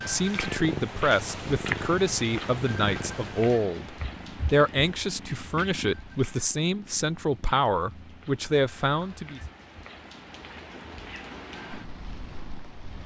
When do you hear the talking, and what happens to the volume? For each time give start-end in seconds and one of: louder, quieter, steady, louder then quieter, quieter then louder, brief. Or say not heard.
0.1-9.4 steady.